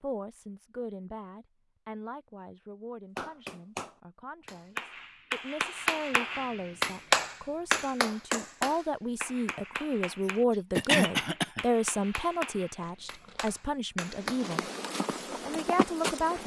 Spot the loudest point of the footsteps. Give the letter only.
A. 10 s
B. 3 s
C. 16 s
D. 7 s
C.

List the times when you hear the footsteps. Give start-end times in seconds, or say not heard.
12.8-16.4.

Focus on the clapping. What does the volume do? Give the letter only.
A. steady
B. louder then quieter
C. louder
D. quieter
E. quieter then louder
B.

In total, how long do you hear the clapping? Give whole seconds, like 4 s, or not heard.
11 s.